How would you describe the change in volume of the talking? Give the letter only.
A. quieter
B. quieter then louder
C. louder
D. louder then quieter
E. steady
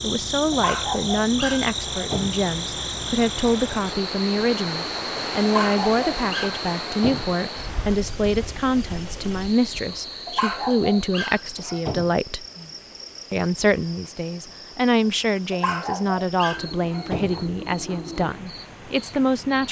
E.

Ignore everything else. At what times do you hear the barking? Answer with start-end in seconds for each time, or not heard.
0.5-2.5, 5.4-7.3, 10.2-12.2, 15.5-17.4.